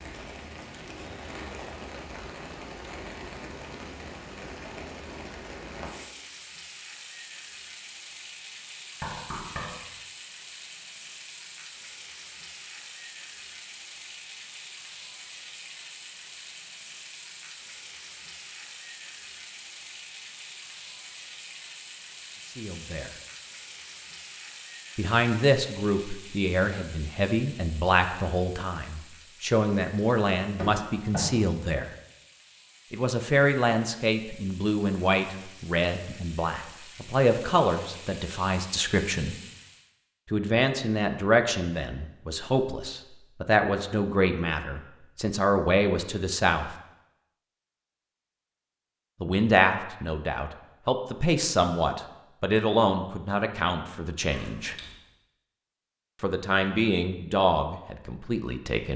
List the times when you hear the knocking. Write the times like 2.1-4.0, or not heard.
9.0-9.8, 30.6-31.4, 54.3-55.0.